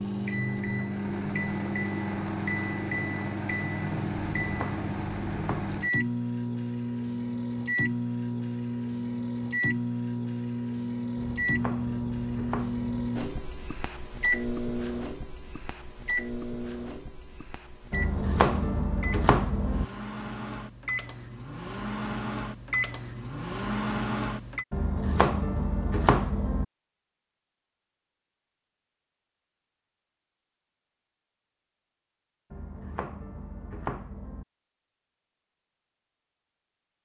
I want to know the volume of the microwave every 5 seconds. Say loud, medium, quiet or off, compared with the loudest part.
loud, loud, loud, medium, loud, off, off, off.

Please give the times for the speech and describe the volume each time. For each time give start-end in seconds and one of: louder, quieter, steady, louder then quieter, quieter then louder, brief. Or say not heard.
not heard.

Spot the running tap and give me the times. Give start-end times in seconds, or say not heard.
not heard.